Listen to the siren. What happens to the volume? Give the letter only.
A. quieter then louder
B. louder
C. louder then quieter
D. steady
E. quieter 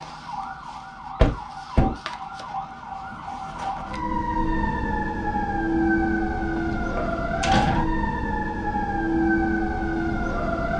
B.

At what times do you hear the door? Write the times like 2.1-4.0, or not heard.
1.1-1.9, 6.5-7.8.